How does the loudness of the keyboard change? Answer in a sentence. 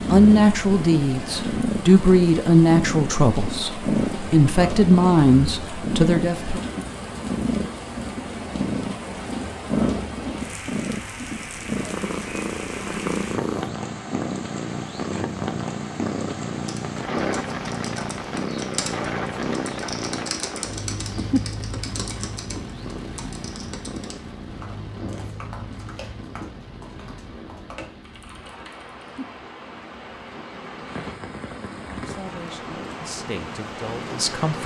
The loudness of the keyboard goes down.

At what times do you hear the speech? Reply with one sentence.
You can hear the speech from 0.1 to 6.6 s and from 31.8 to 34.6 s.